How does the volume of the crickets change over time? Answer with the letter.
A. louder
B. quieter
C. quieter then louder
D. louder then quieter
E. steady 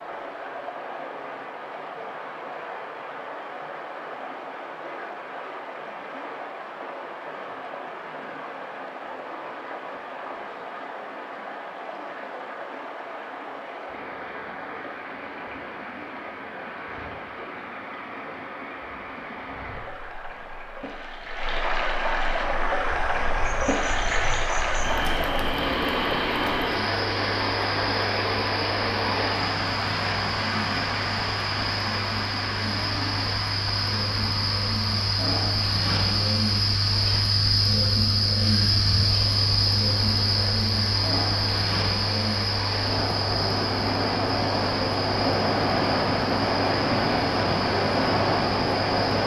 D.